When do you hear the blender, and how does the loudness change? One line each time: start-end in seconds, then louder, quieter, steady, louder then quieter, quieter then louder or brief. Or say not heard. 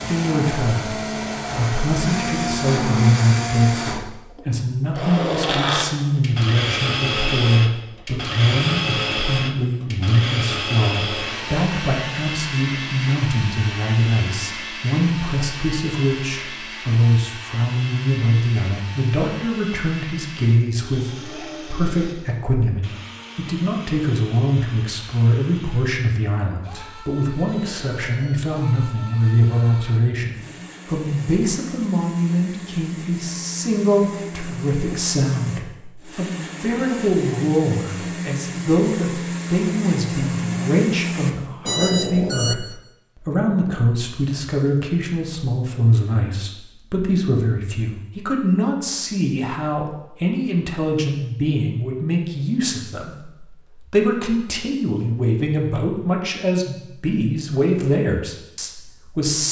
0.0-41.3 quieter then louder.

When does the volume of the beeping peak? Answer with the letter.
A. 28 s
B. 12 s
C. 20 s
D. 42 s
D.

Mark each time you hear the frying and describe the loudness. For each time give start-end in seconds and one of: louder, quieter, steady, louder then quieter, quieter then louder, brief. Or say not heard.
not heard.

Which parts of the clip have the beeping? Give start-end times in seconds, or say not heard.
11.2-11.7, 27.4-28.4, 41.6-42.5.